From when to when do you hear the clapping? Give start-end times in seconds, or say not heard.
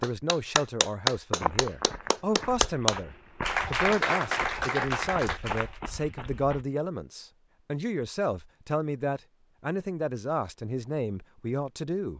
0.0-5.7.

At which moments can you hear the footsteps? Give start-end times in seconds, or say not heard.
1.4-6.7.